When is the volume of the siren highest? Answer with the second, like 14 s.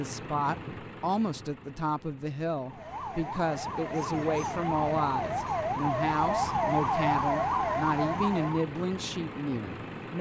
7 s.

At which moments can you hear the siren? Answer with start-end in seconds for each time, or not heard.
2.6-8.7.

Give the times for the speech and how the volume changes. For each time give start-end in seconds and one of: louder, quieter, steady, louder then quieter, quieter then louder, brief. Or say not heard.
0.0-10.1 steady.